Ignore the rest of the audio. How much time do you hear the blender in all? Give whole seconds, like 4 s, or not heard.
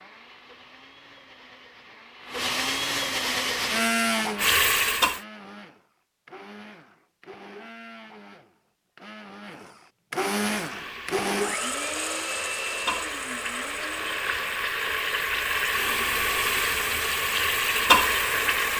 15 s.